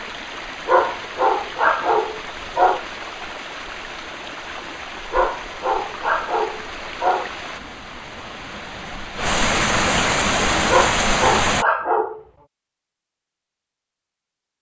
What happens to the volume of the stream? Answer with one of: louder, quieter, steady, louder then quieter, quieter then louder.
louder.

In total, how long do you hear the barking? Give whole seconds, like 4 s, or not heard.
6 s.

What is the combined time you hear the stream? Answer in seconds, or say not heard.
12 s.